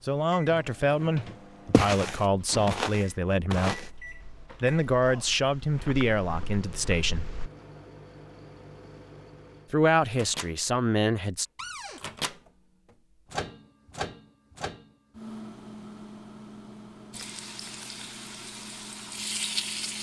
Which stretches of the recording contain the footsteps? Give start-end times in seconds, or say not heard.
1.7-7.5.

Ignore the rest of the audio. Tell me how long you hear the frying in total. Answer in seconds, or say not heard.
3 s.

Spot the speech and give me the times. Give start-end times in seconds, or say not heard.
0.0-7.3, 9.7-11.4.